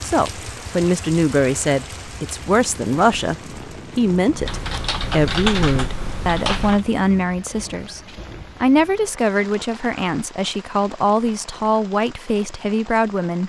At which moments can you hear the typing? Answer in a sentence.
You can hear the typing from 4.5 to 6.8 s.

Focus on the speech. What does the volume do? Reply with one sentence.
The volume of the speech stays about the same.